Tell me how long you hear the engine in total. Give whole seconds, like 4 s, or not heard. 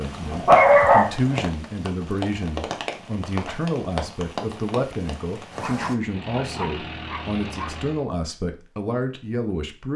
2 s.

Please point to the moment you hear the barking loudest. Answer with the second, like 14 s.
1 s.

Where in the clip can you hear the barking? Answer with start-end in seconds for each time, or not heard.
0.2-1.4, 5.6-7.8.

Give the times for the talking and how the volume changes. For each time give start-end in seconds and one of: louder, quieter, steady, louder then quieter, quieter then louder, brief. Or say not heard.
0.0-9.9 steady.